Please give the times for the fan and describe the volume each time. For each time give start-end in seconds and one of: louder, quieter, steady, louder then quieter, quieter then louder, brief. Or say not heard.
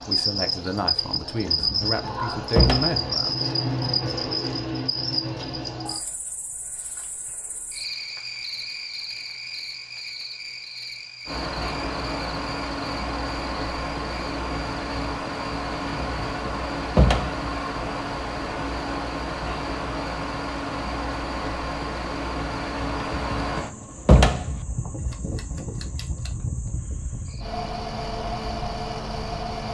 11.2-29.6 steady.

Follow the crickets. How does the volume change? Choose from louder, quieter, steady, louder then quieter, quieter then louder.
quieter.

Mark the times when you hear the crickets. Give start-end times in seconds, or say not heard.
0.0-29.6.